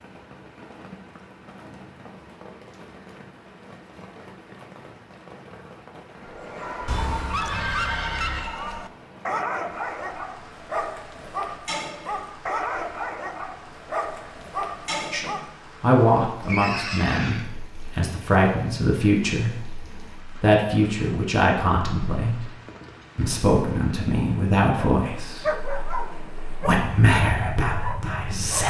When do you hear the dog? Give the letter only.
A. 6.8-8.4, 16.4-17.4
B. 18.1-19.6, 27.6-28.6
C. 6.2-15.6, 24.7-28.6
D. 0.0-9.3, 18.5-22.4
C.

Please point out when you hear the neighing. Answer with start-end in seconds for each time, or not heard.
6.8-8.4, 16.4-17.4.